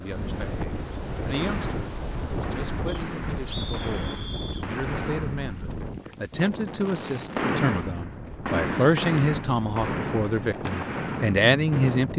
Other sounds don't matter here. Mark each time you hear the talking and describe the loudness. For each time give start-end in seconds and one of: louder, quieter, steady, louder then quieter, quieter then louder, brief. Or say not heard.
0.0-12.1 louder.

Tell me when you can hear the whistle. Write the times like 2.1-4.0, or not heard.
2.9-4.7.